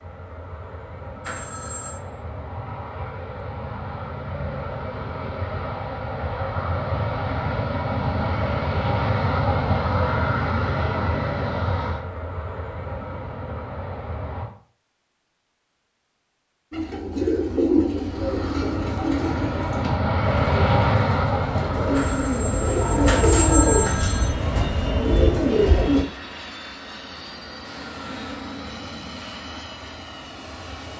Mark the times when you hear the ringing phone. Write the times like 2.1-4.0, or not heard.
1.2-2.0, 21.9-24.3.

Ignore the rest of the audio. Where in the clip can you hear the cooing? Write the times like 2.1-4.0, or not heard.
16.7-26.1.